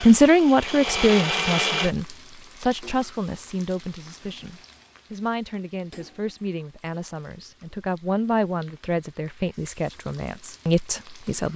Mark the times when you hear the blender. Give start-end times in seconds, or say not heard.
0.0-1.9.